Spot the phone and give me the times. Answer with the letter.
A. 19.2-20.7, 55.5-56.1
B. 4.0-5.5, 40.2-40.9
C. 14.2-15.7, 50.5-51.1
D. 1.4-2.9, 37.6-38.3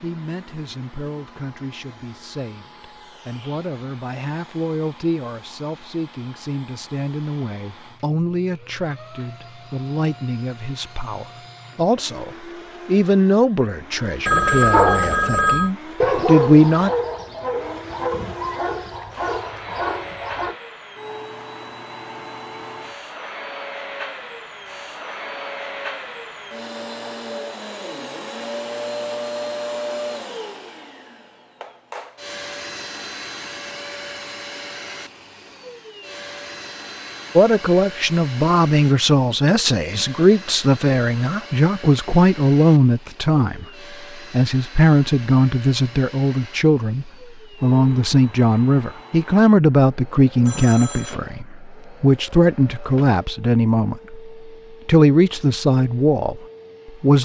C.